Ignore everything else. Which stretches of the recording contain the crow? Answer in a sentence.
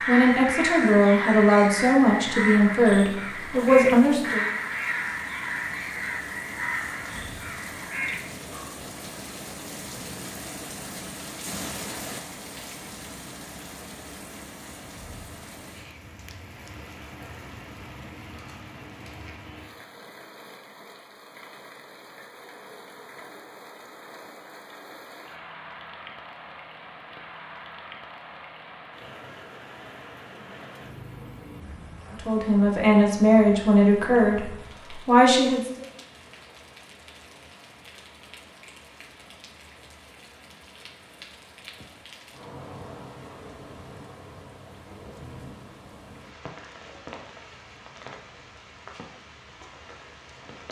You can hear the crow from 0.0 to 8.8 s.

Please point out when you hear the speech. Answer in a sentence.
You can hear the speech from 0.1 to 4.5 s and from 32.1 to 35.9 s.